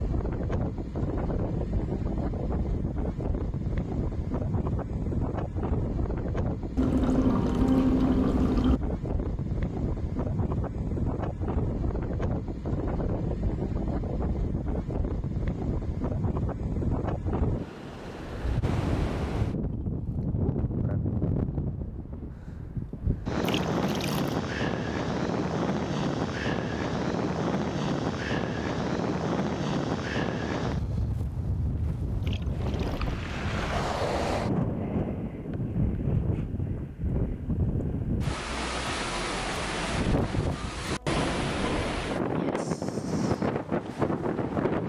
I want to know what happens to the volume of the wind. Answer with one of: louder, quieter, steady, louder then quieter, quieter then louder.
steady.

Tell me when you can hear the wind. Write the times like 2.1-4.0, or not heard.
0.0-44.8.